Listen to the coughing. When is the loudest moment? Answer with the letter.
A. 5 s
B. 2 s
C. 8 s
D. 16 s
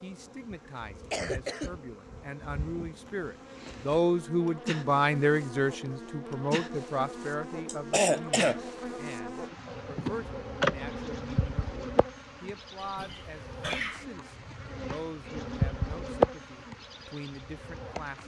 C.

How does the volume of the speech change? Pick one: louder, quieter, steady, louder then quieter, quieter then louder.
louder then quieter.